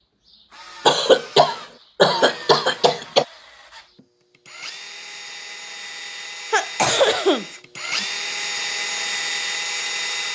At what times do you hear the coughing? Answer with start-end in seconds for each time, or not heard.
0.8-3.2, 6.5-8.1.